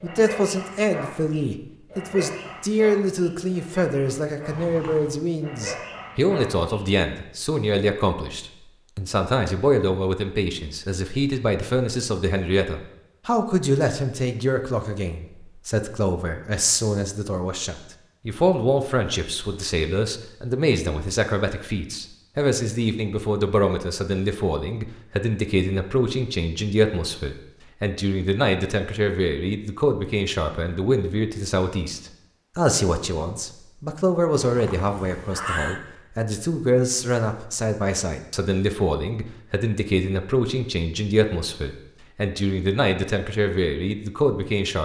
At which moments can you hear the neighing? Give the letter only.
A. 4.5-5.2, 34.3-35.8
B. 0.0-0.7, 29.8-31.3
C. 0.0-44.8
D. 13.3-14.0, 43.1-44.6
A.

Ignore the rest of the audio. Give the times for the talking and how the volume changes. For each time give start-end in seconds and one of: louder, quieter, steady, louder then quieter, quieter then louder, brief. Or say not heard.
0.0-44.8 steady.